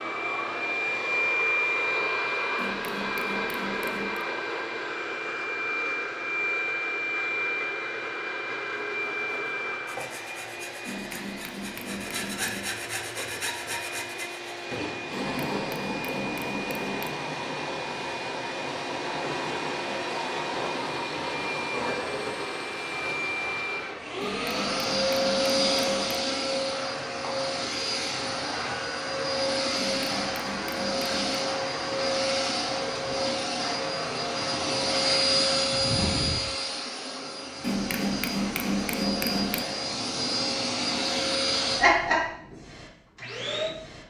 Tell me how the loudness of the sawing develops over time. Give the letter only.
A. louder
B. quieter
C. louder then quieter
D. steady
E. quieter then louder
A.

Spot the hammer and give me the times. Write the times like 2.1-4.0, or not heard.
2.5-4.2, 10.8-12.7, 15.1-17.1, 24.2-26.2, 29.8-31.4, 37.6-39.6.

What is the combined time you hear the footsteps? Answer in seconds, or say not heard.
not heard.